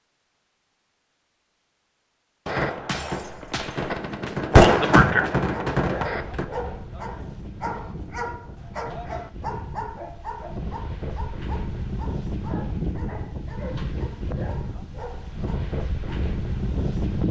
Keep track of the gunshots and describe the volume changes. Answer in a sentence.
The volume of the gunshots goes up, then down.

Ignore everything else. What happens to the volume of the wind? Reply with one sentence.
The volume of the wind goes up.